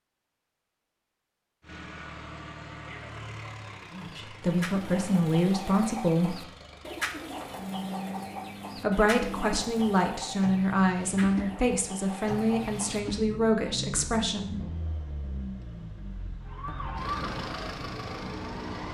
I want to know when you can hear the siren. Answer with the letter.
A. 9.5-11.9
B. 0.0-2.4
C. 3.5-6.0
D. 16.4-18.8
D.